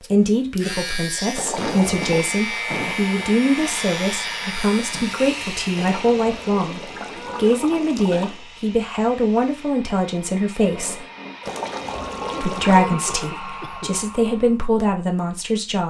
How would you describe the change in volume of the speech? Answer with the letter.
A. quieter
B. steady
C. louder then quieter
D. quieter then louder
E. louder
B.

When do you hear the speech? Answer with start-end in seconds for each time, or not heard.
0.0-11.1, 12.4-15.8.